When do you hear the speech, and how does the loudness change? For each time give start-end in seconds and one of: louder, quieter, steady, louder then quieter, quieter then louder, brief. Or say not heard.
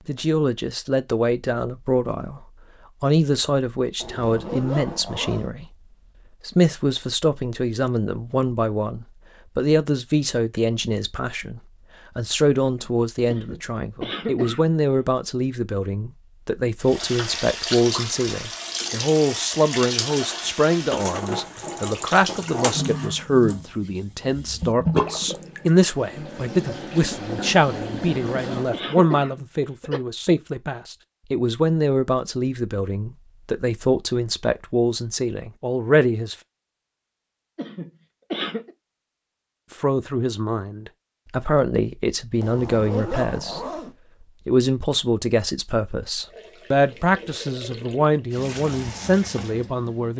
0.1-36.4 steady
39.7-50.1 steady.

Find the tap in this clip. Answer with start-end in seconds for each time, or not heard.
16.9-28.8, 46.2-50.1.